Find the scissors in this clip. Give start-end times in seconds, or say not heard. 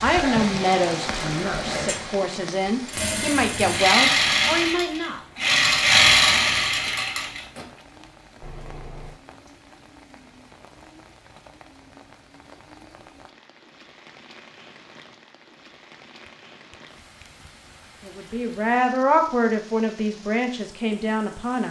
not heard.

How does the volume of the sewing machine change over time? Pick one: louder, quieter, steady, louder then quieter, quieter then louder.
louder.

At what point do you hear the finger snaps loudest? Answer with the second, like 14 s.
9 s.